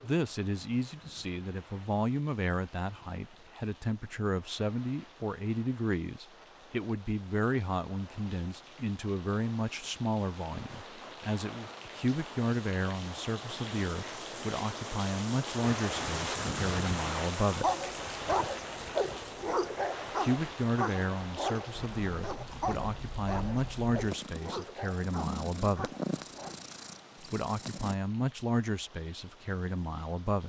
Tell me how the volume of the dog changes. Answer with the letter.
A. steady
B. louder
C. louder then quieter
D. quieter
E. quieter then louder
D.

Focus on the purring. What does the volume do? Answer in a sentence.
The volume of the purring goes up, then down.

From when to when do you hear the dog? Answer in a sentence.
You can hear the dog from 17.5 to 26.6 s.